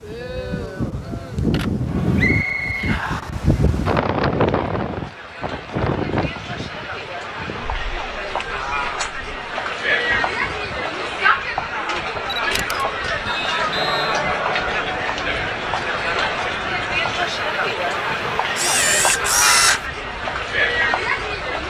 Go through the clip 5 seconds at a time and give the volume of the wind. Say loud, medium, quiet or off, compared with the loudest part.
loud, medium, quiet, quiet, quiet.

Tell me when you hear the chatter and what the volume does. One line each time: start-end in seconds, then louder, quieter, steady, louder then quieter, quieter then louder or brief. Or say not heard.
0.0-21.6 louder.